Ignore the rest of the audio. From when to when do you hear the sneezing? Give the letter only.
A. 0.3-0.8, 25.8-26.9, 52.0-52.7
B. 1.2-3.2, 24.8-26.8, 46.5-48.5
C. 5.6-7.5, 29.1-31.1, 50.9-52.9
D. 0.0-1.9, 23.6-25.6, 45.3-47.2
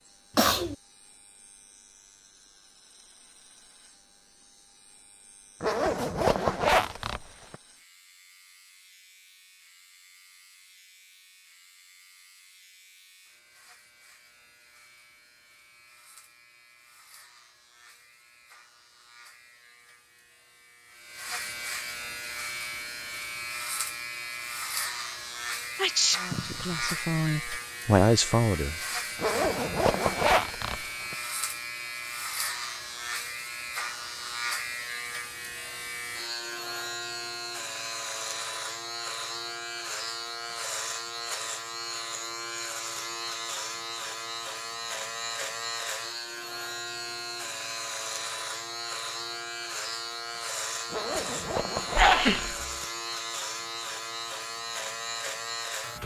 A.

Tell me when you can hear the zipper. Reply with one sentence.
The zipper can be heard from 5.6 to 7.5 s, from 29.1 to 31.1 s and from 50.9 to 52.9 s.